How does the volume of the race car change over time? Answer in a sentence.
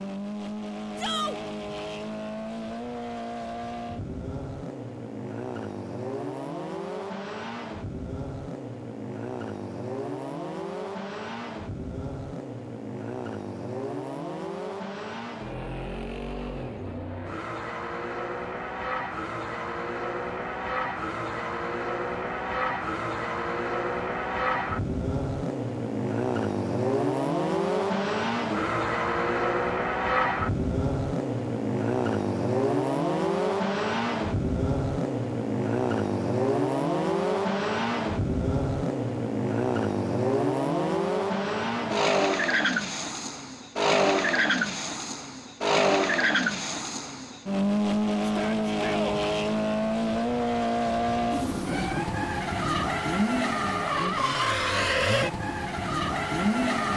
The loudness of the race car goes up.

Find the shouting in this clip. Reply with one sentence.
The shouting can be heard from 0.9 to 1.4 s and from 48.2 to 49.2 s.